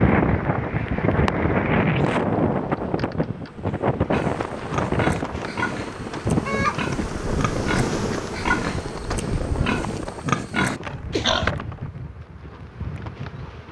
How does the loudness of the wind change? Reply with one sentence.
The loudness of the wind goes down.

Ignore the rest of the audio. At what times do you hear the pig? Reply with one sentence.
The pig can be heard from 4.1 to 11.5 s.